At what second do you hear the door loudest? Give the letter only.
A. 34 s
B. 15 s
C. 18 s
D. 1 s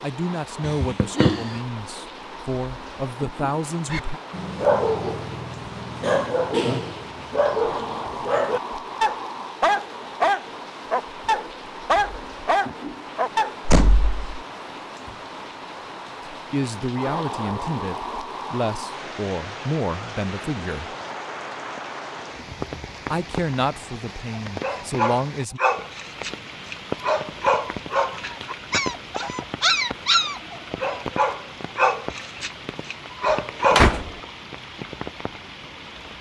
A.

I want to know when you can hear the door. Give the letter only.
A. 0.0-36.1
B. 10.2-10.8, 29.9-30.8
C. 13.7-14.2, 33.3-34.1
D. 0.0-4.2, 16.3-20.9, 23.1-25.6
C.